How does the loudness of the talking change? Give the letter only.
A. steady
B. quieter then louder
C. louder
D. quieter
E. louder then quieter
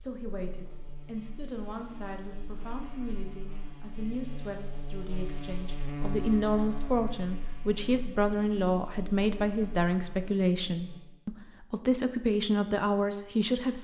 C.